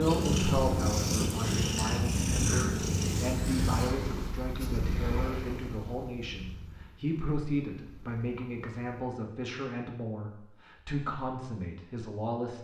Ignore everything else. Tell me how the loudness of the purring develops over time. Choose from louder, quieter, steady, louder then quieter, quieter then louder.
quieter.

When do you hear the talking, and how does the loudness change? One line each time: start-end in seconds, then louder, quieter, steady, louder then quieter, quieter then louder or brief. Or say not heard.
0.0-12.6 steady.